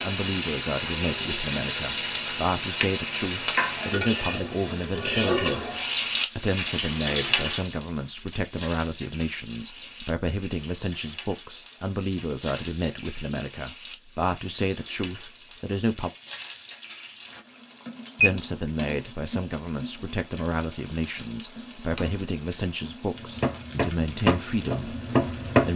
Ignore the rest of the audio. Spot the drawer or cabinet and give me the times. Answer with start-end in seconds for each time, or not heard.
not heard.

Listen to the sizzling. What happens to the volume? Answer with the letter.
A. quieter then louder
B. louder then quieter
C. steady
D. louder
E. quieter
E.